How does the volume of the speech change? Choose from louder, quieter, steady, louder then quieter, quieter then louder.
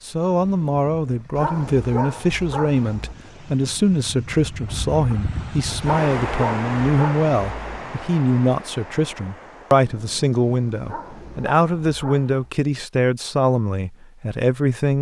steady.